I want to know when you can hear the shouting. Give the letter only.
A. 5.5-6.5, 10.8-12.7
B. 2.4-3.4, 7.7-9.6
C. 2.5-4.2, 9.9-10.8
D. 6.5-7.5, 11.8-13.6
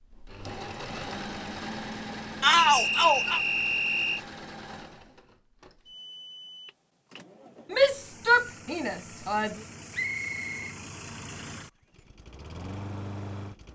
B.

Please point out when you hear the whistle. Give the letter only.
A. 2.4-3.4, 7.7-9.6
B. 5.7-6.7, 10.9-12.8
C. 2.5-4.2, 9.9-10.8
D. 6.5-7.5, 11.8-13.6
C.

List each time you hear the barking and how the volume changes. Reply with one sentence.
You can't hear the barking here.